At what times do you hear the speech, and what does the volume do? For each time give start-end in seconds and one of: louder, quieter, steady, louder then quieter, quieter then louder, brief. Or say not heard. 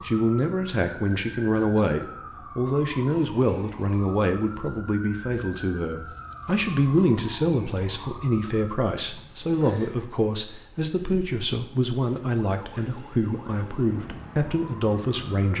0.0-15.5 steady.